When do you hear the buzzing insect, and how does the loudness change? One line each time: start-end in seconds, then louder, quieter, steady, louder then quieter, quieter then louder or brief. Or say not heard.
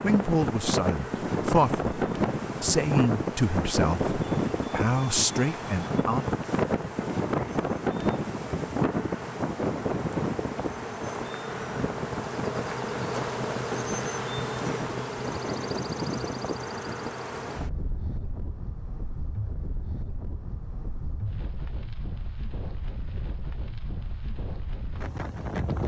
0.0-17.6 louder.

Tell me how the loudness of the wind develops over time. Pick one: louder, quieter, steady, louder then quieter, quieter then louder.
quieter.